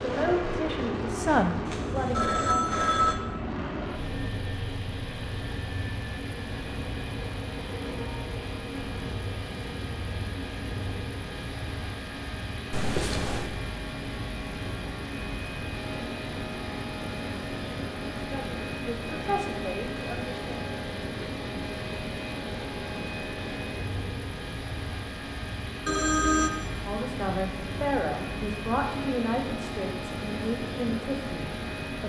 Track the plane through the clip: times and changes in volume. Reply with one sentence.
You can hear the plane from 0.0 to 32.0 s, at a steady volume.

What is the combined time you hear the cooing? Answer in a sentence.
You can't hear the cooing here.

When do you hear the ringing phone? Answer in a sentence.
You can hear the ringing phone from 1.6 to 3.1 s, from 12.7 to 13.5 s and from 25.9 to 26.5 s.